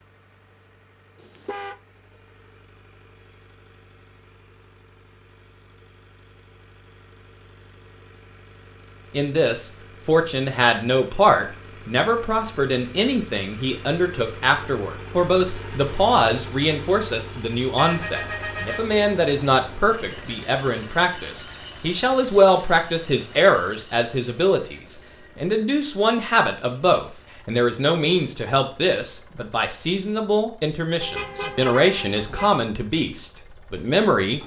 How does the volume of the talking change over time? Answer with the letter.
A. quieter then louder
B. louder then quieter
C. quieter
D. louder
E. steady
E.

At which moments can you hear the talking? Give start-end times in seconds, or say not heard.
9.1-34.4.